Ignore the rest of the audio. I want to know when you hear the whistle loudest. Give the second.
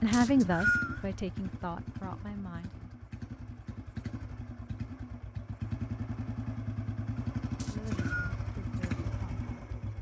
1 s.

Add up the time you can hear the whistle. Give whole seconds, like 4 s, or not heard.
2 s.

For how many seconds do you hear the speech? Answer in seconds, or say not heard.
5 s.